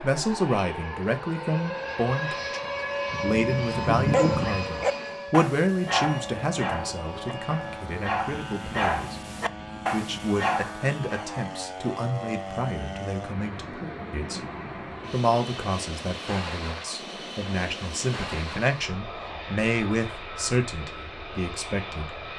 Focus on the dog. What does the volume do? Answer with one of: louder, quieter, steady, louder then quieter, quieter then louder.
quieter then louder.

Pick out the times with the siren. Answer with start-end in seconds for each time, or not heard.
0.0-7.9.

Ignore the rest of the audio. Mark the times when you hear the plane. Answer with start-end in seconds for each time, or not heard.
0.0-22.3.